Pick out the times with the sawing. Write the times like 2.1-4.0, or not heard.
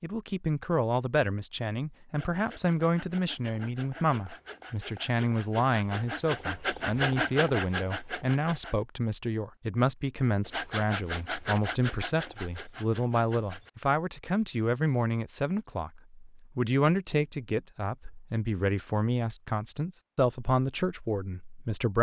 2.1-8.8, 10.4-13.7.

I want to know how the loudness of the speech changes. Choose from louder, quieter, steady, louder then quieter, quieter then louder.
steady.